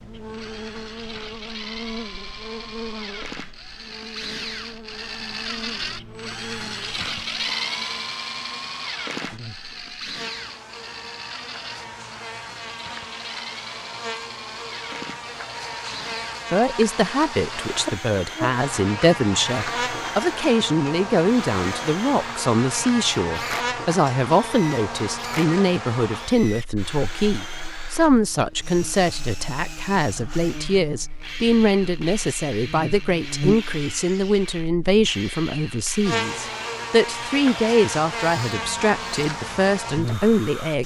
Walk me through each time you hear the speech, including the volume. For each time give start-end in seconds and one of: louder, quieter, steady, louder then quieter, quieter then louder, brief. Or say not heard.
16.5-40.8 steady.